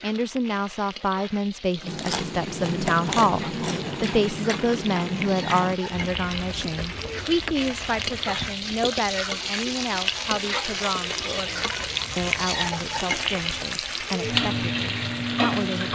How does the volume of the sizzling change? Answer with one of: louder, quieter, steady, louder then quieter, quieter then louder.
louder.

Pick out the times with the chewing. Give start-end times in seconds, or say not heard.
1.8-13.7.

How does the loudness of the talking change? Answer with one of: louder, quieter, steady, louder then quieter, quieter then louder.
quieter.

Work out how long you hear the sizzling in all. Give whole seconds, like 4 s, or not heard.
16 s.